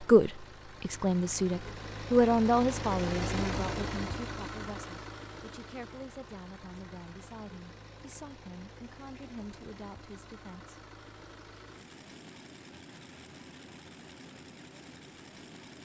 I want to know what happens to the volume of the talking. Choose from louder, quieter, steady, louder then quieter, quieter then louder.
quieter.